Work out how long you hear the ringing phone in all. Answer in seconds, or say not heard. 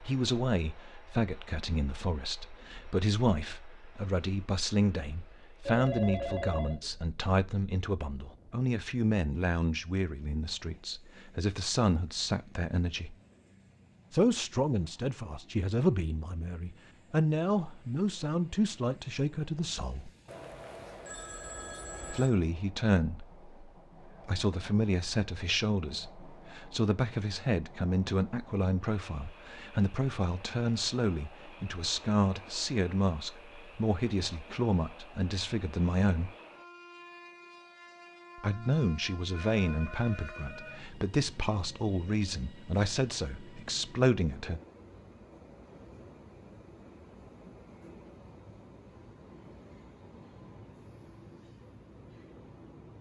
5 s.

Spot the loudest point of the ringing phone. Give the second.
6 s.